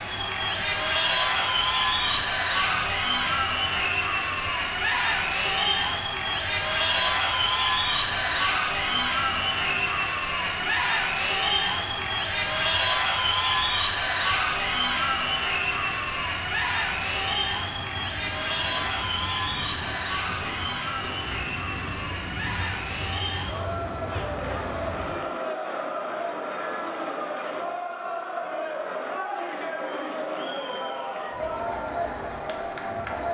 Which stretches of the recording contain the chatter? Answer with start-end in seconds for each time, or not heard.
0.0-33.2.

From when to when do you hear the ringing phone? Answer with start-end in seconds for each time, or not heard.
not heard.